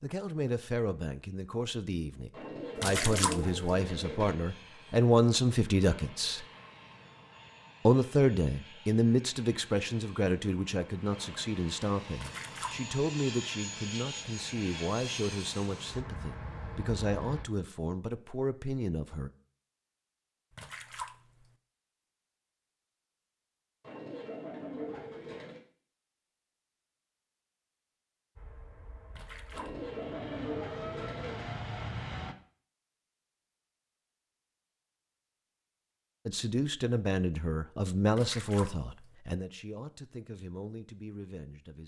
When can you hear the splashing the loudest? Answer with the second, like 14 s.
3 s.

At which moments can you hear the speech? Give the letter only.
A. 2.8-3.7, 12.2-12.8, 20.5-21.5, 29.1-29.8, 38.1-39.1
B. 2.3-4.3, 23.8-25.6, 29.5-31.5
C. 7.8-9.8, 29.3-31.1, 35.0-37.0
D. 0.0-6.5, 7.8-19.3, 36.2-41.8
D.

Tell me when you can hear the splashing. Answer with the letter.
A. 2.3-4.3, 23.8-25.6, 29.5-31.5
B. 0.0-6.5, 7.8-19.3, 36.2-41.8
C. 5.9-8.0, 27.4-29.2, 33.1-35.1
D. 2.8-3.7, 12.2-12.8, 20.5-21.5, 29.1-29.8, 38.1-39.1
D.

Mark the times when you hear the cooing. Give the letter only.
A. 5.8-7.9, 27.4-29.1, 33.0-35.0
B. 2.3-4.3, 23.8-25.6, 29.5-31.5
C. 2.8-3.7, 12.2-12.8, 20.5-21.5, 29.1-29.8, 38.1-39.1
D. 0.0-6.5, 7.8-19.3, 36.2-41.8
B.